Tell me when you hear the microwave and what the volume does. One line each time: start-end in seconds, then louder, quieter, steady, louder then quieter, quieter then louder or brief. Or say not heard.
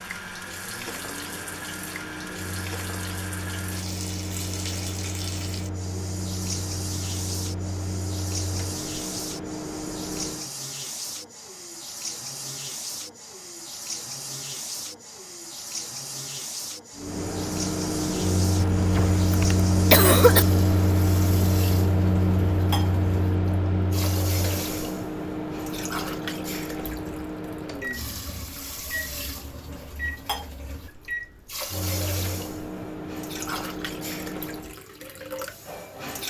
0.0-10.5 louder
16.9-34.8 quieter.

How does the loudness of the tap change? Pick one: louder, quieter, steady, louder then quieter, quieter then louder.
steady.